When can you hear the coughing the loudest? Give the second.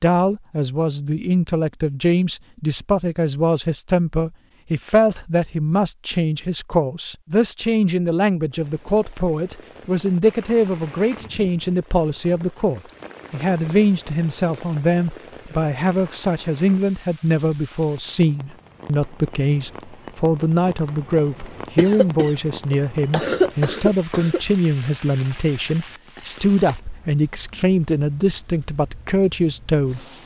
23 s.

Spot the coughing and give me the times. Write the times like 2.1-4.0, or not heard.
21.8-24.4.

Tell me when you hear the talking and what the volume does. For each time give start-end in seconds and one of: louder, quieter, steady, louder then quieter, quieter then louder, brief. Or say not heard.
0.0-30.1 steady.